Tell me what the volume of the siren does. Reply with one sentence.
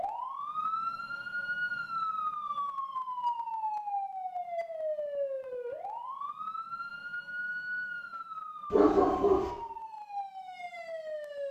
The loudness of the siren goes down.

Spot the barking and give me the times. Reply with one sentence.
You can hear the barking from 8.7 to 9.5 s.